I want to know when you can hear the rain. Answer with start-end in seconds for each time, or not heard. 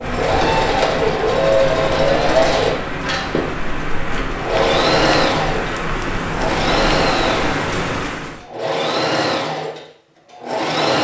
0.0-8.4.